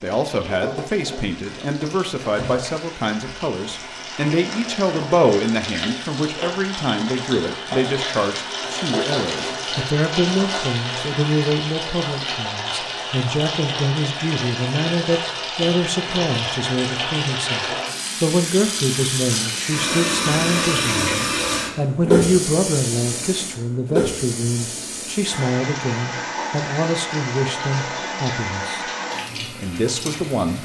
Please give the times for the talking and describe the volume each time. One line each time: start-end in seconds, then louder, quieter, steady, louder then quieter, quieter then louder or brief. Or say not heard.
0.0-28.9 steady
29.6-30.6 brief.